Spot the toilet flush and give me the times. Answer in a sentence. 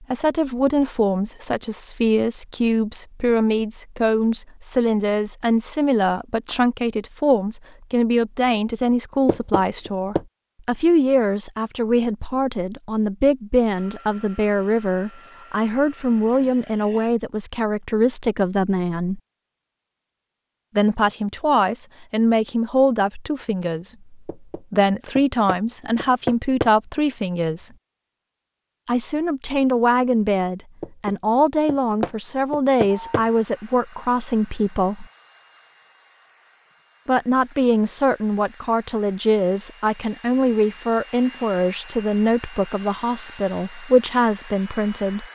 You can't hear the toilet flush here.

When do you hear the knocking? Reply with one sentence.
You can hear the knocking from 9.2 to 10.2 s, from 24.2 to 26.7 s and from 30.8 to 33.2 s.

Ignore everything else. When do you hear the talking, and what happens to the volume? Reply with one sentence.
You can hear the talking from 0.0 to 19.2 s, at a steady volume; from 20.8 to 27.7 s, at a steady volume; from 28.9 to 35.0 s, at a steady volume; and from 37.0 to 45.2 s, at a steady volume.